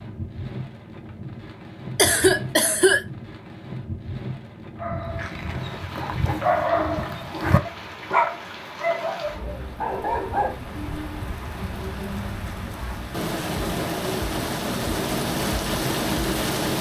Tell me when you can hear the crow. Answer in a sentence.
The crow can't be heard in this clip.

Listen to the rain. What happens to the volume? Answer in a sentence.
The volume of the rain goes up.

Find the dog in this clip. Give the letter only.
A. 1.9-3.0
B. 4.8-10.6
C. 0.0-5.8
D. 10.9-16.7
B.